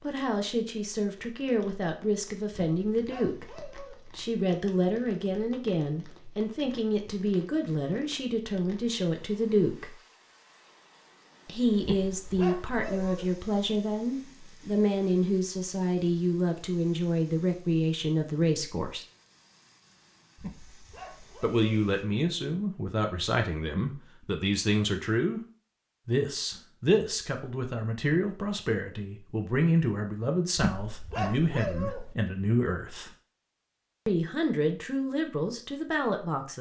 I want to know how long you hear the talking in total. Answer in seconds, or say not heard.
31 s.